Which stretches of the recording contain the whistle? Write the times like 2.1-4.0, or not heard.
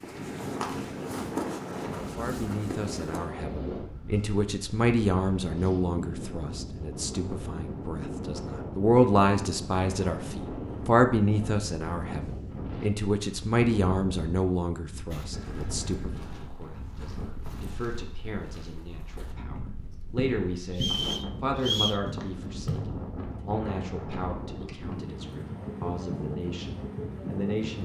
20.7-22.1.